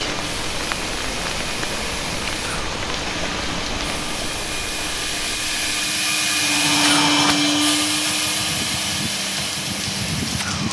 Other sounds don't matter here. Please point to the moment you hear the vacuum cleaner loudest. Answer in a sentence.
The loudest moment of the vacuum cleaner is at 7 seconds.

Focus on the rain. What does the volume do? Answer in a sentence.
The volume of the rain goes down, then up.